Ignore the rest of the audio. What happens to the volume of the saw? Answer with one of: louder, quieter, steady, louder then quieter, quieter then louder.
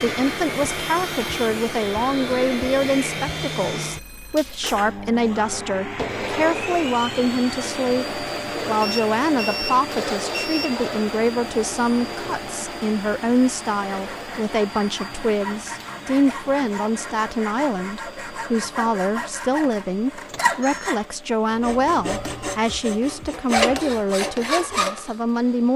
louder.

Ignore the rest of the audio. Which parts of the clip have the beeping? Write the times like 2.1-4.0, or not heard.
3.8-4.5, 8.8-10.8, 20.2-20.9.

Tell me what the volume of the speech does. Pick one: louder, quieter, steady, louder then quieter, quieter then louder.
steady.